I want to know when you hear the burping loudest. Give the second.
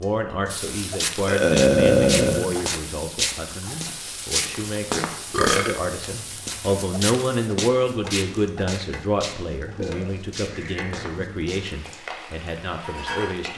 2 s.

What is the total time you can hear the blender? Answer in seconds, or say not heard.
not heard.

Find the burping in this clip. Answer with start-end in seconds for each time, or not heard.
1.2-2.5, 5.3-5.8, 9.7-11.1.